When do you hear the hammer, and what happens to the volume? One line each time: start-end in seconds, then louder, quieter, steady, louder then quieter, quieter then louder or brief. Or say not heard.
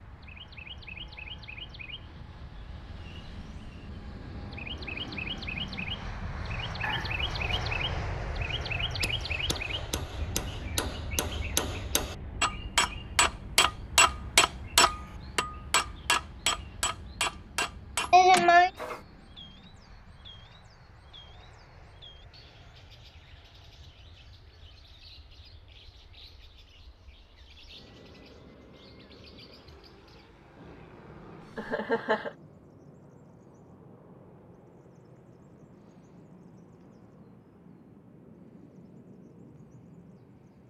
9.0-19.1 louder then quieter.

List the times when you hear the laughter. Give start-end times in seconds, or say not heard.
6.8-7.6, 18.1-18.7, 31.6-32.3.